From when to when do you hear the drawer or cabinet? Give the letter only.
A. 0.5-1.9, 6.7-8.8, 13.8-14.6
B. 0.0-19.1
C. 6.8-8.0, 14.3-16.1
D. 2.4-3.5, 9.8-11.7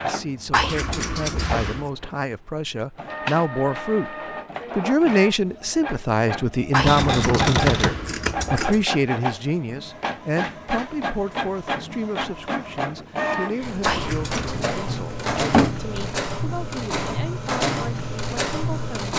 C.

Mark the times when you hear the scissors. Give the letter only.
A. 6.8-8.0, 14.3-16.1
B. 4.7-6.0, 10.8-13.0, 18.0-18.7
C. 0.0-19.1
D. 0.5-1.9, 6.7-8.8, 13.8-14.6
D.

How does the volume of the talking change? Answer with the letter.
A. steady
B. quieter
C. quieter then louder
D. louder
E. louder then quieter
E.